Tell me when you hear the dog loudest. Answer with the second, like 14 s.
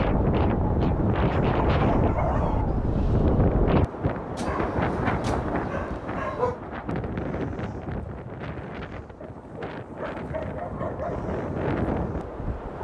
6 s.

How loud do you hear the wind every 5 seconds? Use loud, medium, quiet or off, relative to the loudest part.
loud, medium, medium.